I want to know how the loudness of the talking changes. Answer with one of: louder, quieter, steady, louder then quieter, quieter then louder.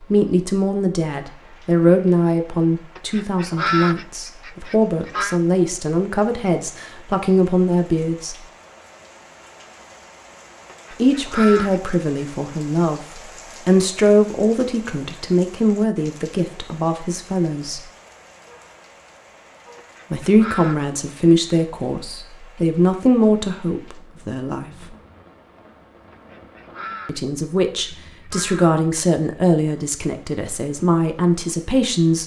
steady.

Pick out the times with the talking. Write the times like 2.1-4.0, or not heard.
0.0-8.3, 11.0-17.8, 20.1-24.9, 27.1-32.2.